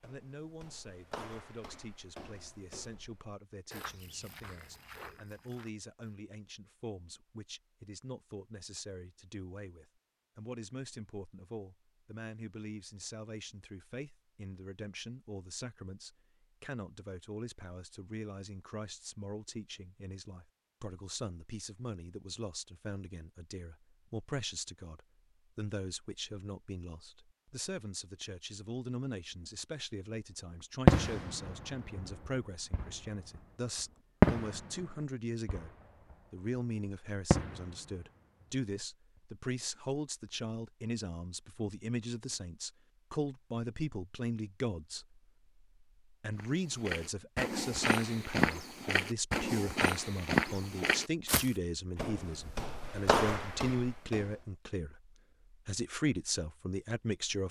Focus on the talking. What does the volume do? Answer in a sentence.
The volume of the talking goes up.